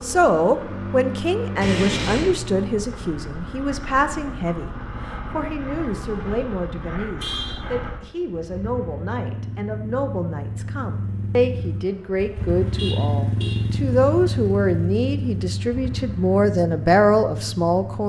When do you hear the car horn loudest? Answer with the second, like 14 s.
2 s.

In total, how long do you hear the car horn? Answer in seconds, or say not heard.
2 s.